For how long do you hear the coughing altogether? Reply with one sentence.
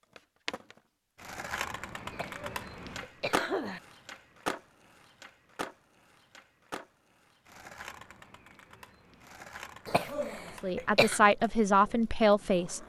You can hear the coughing for 3 seconds altogether.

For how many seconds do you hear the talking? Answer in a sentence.
You can hear the talking for 2 seconds altogether.